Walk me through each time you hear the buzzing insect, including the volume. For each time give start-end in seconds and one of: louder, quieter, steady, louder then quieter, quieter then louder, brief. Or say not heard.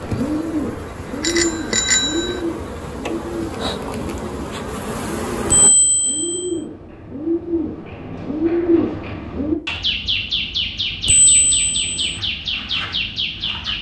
0.0-5.7 louder.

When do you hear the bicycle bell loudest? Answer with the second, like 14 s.
2 s.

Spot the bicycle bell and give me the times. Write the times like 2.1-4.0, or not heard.
1.2-2.4, 5.5-6.5, 11.1-12.2.